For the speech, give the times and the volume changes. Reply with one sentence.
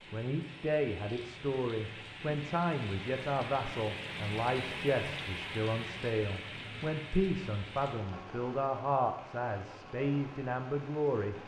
You can hear the speech from 0.1 to 11.4 s, at a steady volume.